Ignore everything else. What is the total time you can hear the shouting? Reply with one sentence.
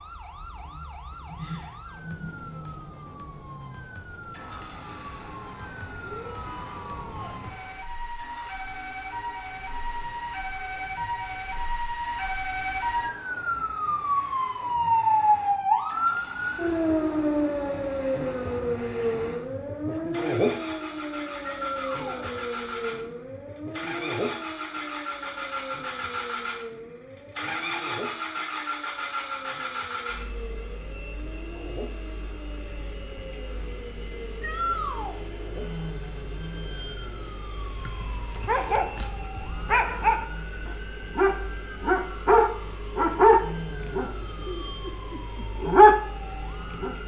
The shouting can be heard for 3 seconds in total.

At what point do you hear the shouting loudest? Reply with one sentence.
The volume of the shouting peaks at 35 seconds.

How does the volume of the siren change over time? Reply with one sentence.
The volume of the siren goes up, then down.